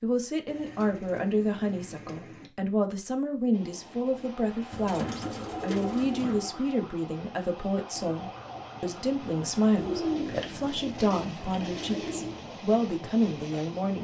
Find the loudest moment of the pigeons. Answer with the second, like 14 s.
10 s.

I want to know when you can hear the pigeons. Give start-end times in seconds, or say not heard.
0.5-2.5, 4.7-6.5, 9.8-12.4.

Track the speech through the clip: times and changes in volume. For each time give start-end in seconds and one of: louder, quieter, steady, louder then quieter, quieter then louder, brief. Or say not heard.
0.0-13.9 steady.